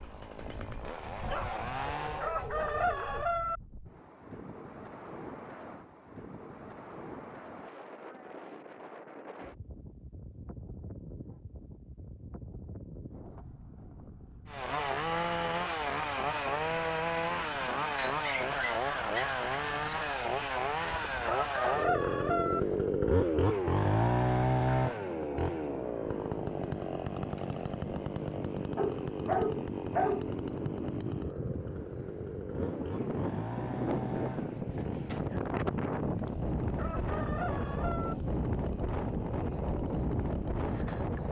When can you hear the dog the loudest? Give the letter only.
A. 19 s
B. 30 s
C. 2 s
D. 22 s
B.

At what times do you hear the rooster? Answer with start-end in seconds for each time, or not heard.
2.0-3.6, 21.1-22.6, 36.6-38.1.